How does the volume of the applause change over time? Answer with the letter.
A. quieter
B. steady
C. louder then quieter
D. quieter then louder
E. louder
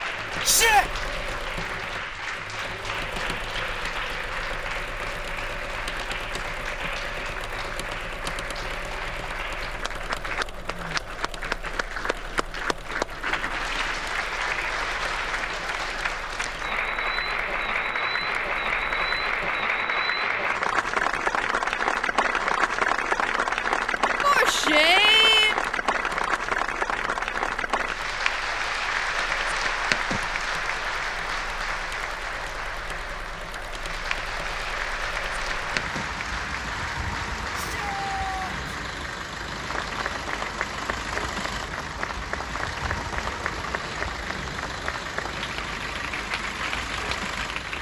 C.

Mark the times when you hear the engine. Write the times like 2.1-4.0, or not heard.
0.0-47.7.